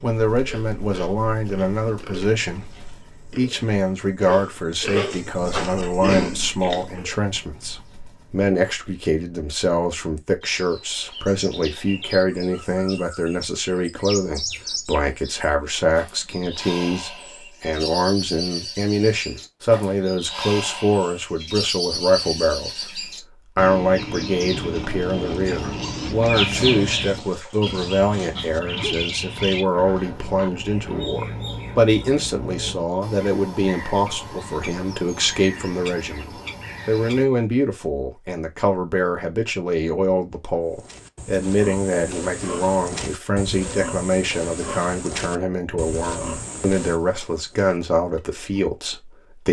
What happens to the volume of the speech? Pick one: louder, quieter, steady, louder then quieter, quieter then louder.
steady.